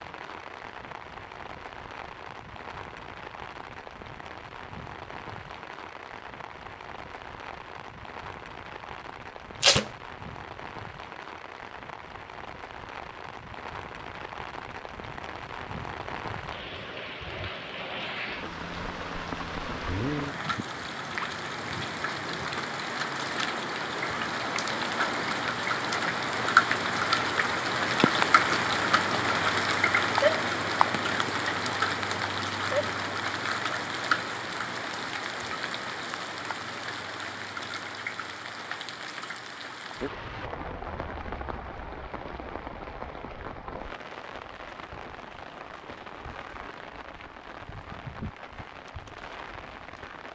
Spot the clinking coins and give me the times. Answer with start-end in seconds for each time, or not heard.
not heard.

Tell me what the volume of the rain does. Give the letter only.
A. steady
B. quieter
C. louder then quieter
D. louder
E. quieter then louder
C.